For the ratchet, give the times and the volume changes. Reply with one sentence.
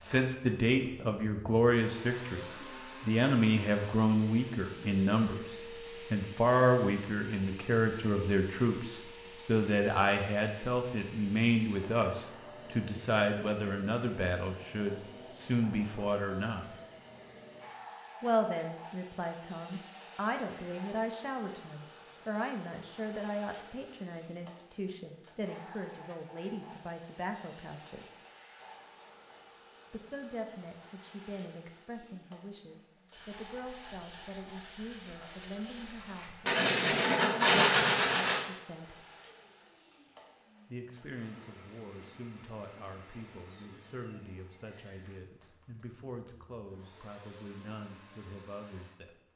The ratchet can't be heard in this clip.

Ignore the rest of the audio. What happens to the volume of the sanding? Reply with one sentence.
The volume of the sanding goes up.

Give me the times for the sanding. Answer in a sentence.
You can hear the sanding from 33.1 to 38.4 s.